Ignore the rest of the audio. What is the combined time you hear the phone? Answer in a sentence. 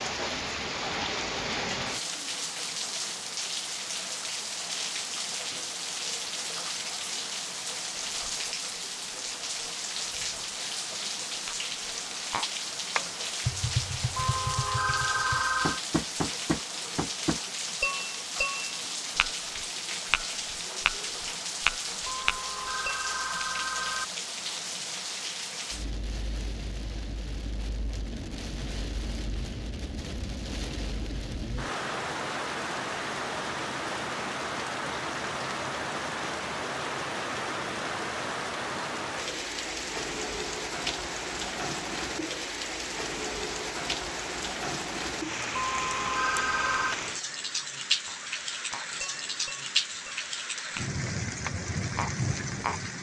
You can hear the phone for 5 seconds altogether.